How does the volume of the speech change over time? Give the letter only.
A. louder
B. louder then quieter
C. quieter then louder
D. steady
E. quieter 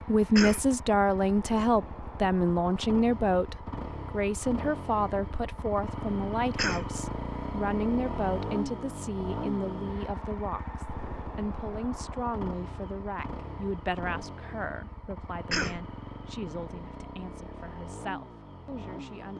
E.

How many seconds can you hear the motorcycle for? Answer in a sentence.
The motorcycle can be heard for 19 seconds in total.